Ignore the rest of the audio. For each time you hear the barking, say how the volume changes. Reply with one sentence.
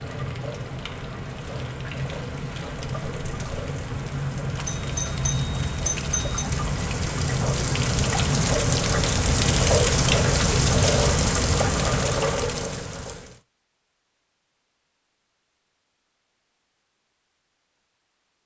The barking can't be heard in this clip.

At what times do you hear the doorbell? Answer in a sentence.
You can hear the doorbell from 4.7 to 6.5 s.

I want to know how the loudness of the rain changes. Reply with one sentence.
The volume of the rain goes up.